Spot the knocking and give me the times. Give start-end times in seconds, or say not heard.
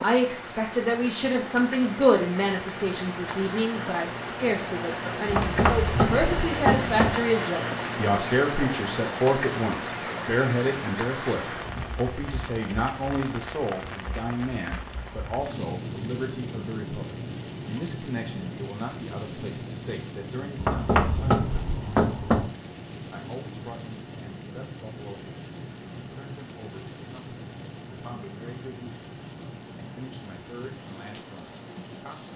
5.2-7.2, 20.6-22.5.